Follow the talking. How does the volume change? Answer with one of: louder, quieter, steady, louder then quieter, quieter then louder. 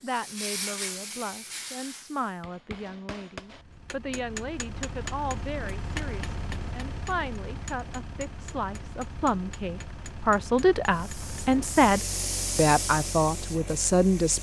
louder.